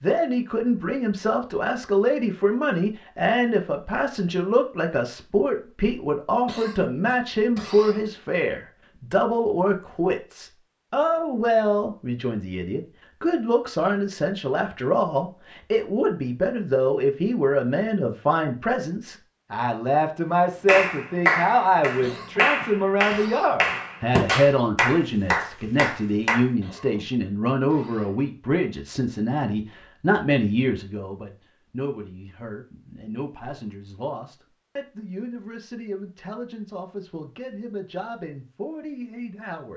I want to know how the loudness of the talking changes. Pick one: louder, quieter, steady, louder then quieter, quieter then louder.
quieter.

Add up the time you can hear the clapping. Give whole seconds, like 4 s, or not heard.
6 s.